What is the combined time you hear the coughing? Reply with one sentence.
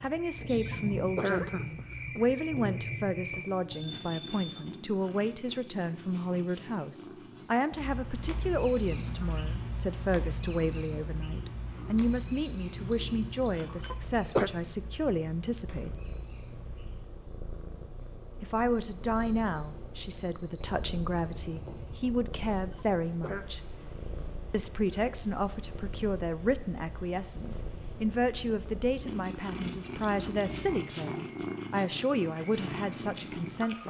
The coughing can be heard for 3 seconds in total.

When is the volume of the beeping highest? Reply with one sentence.
The volume of the beeping peaks at 4 seconds.